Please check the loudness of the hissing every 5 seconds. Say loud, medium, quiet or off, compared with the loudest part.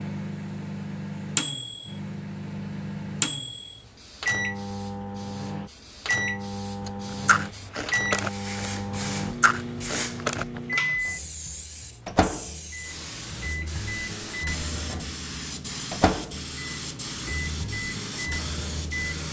quiet, medium, loud, loud.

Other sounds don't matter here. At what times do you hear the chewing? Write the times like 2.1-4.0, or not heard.
6.8-10.6.